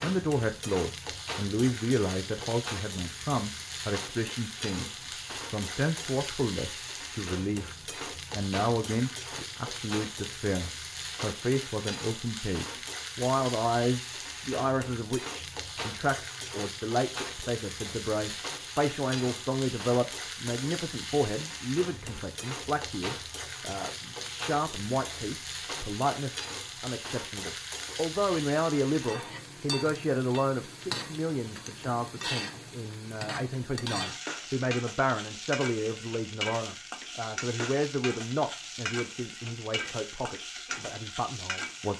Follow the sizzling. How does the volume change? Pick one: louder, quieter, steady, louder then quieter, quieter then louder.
steady.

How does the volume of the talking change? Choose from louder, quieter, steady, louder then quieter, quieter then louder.
steady.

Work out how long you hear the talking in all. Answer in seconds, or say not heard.
42 s.